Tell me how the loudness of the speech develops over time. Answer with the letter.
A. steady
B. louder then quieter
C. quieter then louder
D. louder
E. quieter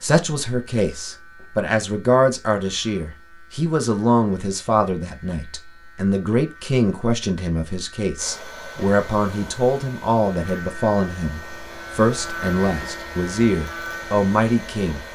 A.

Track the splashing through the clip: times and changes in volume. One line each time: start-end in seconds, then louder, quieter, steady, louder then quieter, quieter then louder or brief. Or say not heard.
not heard.